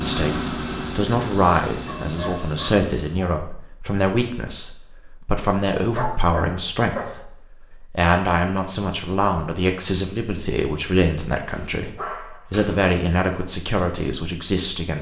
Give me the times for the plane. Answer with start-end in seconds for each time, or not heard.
0.0-3.3.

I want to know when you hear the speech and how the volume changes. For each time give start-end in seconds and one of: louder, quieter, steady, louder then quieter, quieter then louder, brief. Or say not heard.
0.0-14.9 steady.